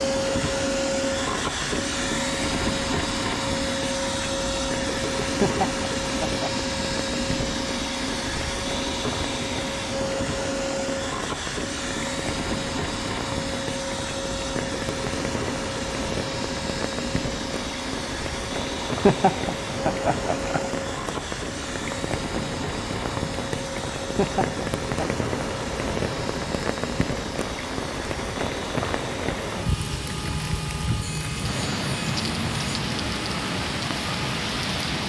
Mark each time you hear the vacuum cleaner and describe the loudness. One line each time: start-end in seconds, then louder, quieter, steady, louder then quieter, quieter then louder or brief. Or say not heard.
0.0-35.0 quieter.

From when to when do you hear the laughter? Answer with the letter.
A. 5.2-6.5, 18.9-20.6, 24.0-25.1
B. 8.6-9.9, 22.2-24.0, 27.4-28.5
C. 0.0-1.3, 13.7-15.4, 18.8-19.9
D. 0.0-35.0
A.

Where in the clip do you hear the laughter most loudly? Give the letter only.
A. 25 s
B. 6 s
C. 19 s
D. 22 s
C.